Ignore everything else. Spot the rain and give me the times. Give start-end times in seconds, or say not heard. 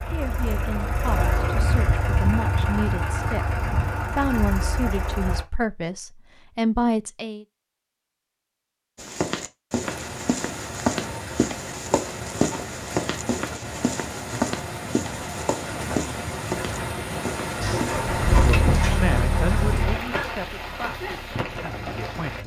9.8-22.4.